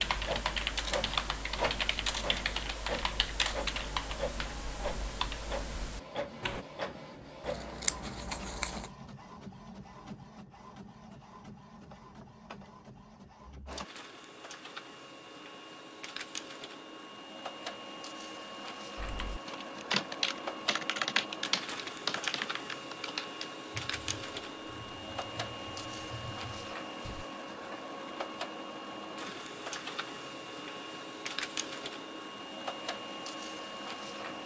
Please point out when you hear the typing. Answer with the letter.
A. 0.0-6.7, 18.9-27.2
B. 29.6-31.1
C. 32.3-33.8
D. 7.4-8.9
A.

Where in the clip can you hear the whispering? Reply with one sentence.
You can't hear the whispering here.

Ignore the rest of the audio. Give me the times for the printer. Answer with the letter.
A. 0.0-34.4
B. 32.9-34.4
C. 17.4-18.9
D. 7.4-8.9
A.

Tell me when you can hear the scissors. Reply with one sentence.
The scissors can be heard from 7.4 to 8.9 s.